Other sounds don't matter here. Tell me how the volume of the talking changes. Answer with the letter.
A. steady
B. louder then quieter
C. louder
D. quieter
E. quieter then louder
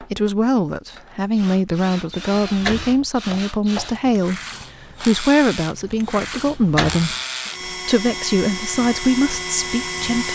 A.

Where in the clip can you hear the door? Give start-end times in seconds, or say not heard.
2.3-3.0, 6.2-7.0.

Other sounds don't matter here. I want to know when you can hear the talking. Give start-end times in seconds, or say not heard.
0.0-10.3.